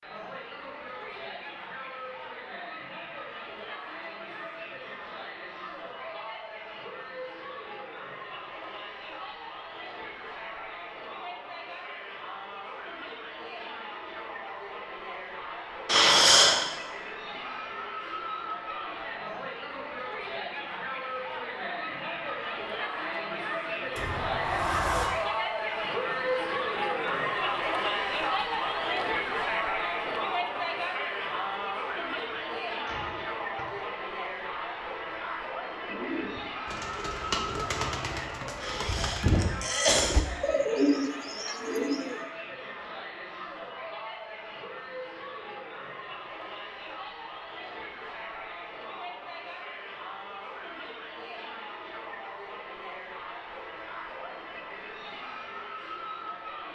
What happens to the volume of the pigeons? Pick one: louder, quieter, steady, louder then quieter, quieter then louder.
louder.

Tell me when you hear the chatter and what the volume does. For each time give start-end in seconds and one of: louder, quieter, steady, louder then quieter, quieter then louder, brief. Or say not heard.
0.0-56.7 louder then quieter.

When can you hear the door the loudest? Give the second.
25 s.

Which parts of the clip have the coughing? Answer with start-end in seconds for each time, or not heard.
15.8-16.6, 38.6-40.2.